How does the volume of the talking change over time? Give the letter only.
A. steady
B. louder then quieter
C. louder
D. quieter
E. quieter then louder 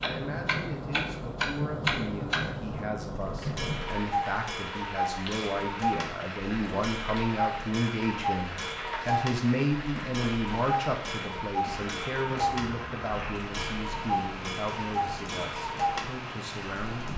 B.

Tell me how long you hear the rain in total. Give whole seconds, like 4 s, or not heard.
17 s.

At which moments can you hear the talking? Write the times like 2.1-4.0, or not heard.
0.0-17.1.